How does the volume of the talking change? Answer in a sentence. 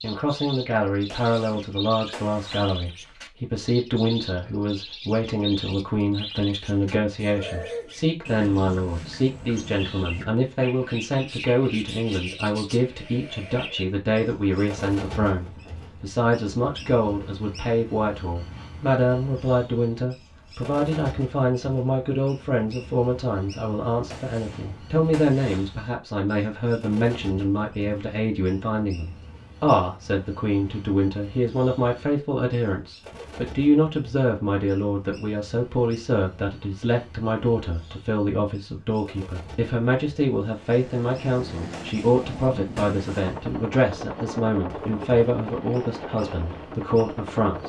The loudness of the talking stays about the same.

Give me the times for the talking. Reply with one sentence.
The talking can be heard from 0.0 to 47.6 s.